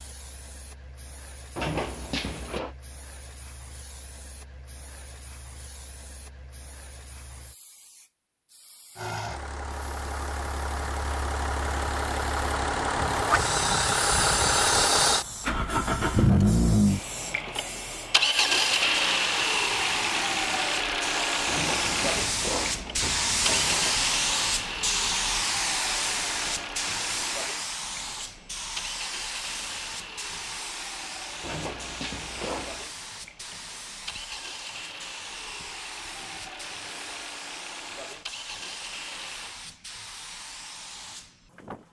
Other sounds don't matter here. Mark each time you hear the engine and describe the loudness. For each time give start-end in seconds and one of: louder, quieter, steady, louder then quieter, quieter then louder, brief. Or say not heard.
8.9-39.5 quieter.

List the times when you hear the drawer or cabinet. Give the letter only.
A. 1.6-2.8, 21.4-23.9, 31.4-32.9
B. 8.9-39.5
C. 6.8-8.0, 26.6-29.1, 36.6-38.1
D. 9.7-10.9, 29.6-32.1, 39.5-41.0
A.